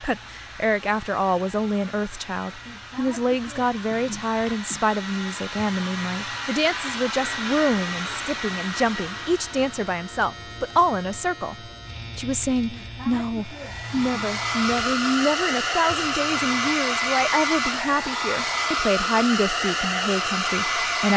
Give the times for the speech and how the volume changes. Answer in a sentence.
The speech can be heard from 0.0 to 21.1 s, at a steady volume.